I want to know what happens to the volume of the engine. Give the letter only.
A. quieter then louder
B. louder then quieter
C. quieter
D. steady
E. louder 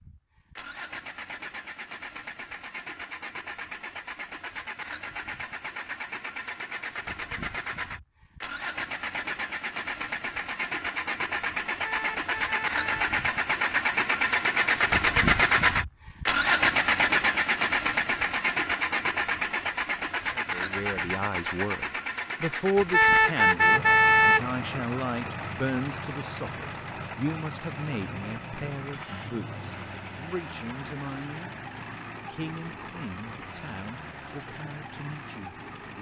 B.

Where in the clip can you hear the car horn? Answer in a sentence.
The car horn can be heard from 11.8 to 13.1 s and from 22.9 to 24.4 s.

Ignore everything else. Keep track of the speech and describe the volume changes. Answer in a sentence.
The volume of the speech goes down.